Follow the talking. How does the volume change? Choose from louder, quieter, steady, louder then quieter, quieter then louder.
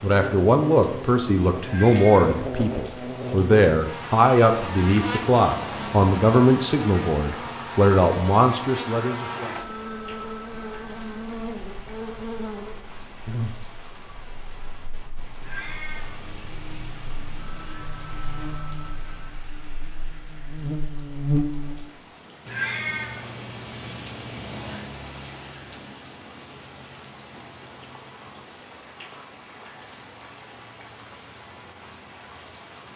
steady.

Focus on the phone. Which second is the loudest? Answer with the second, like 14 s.
10 s.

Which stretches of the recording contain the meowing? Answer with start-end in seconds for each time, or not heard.
1.6-2.4, 15.4-17.9, 22.4-24.9.